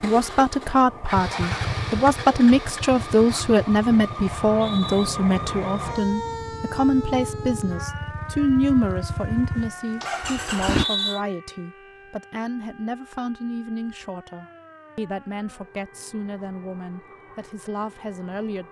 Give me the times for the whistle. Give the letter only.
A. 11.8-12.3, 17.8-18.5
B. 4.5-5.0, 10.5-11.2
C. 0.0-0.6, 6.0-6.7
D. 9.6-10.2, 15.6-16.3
B.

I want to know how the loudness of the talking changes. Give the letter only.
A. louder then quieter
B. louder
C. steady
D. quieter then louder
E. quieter
E.